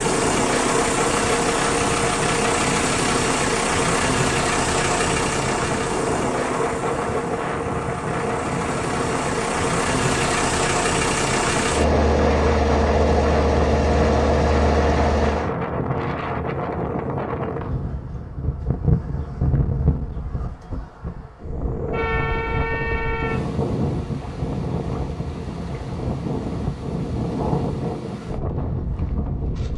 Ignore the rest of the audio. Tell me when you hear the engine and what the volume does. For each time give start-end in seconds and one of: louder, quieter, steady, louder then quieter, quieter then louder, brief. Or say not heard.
0.0-15.5 quieter then louder.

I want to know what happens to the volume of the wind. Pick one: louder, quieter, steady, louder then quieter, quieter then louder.
steady.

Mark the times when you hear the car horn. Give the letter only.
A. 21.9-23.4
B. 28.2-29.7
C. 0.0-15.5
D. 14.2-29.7
A.